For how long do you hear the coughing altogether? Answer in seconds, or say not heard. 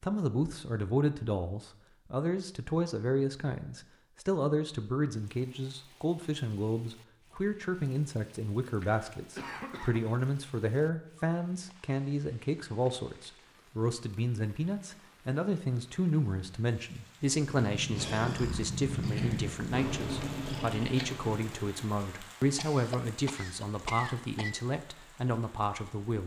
3 s.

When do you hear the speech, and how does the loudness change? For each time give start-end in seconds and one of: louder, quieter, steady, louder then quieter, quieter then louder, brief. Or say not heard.
0.0-26.2 steady.